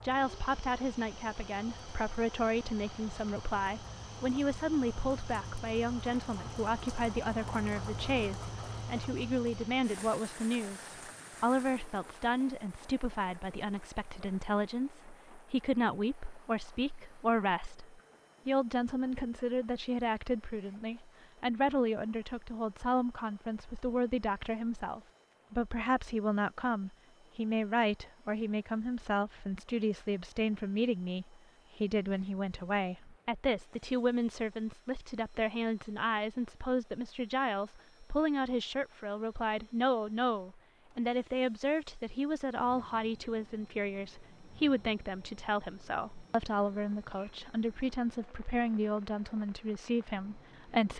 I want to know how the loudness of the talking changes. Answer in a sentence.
The volume of the talking stays about the same.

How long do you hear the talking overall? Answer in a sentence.
You can hear the talking for 51 seconds altogether.